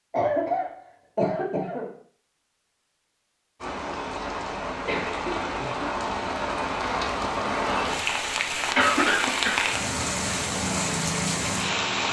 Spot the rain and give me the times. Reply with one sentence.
The rain can be heard from 3.6 to 12.0 s.